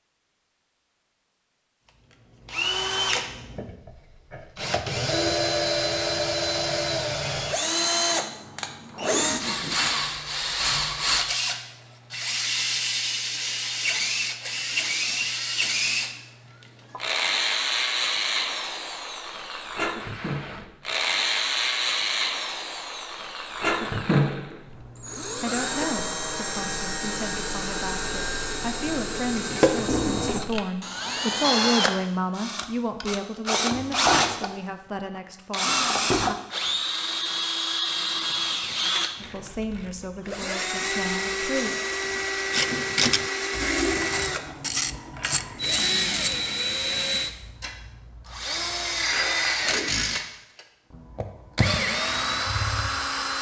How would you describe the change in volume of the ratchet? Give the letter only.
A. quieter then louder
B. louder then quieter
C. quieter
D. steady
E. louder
E.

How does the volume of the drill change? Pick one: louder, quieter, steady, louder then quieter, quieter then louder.
steady.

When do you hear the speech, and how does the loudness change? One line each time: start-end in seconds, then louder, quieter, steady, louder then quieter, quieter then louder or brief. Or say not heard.
25.4-36.4 louder then quieter
39.2-41.7 brief.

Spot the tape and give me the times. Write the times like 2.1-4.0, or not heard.
8.9-9.9, 20.0-20.7, 49.5-50.2.